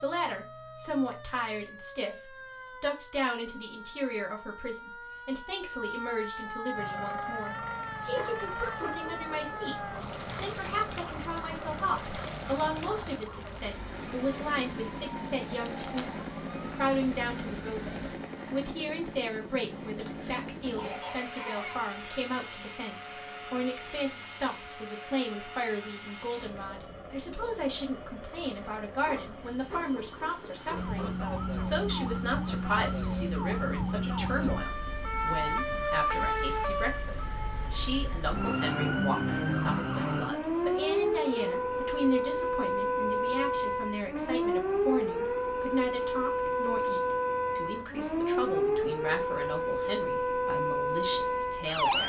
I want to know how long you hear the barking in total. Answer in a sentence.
You can hear the barking for 4 seconds altogether.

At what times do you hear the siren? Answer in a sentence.
You can hear the siren from 0.0 to 18.2 s and from 30.7 to 52.0 s.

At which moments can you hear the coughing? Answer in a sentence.
The coughing can be heard from 20.0 to 21.9 s.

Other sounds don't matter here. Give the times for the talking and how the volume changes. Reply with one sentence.
The talking can be heard from 0.0 to 52.0 s, at a steady volume.